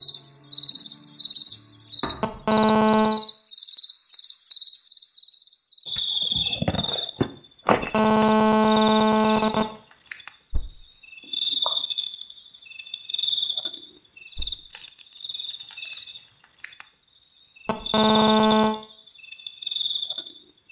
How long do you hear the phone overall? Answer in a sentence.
You can hear the phone for 4 seconds altogether.